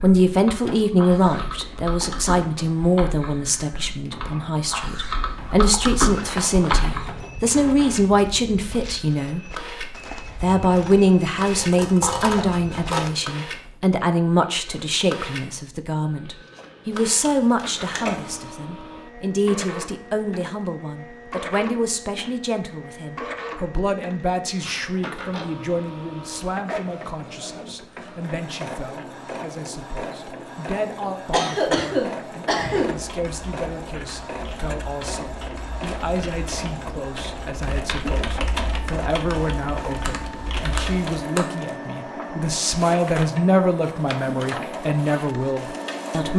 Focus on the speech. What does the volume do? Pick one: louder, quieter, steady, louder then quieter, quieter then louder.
quieter then louder.